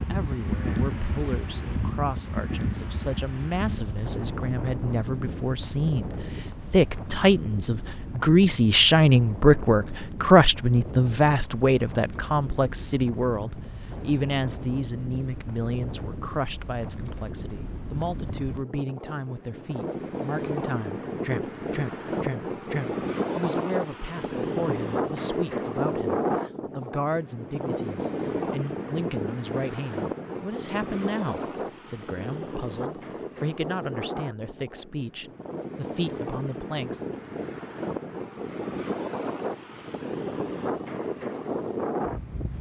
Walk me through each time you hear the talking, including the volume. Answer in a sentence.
You can hear the talking from 0.1 to 37.0 s, getting louder then quieter.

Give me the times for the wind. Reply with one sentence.
The wind can be heard from 0.0 to 42.5 s.